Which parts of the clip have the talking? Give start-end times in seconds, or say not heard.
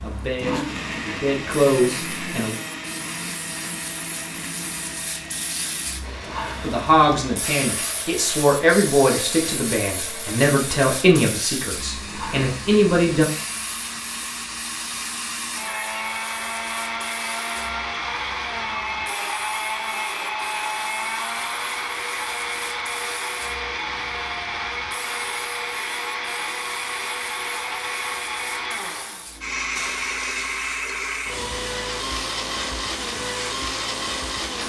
0.0-2.5, 6.6-13.2.